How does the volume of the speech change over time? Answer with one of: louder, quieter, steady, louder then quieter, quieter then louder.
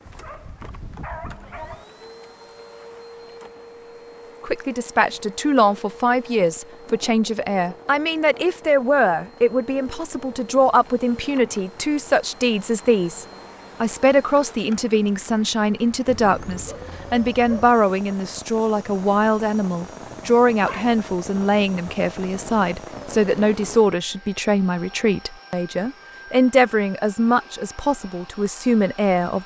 steady.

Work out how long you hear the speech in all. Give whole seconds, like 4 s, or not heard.
25 s.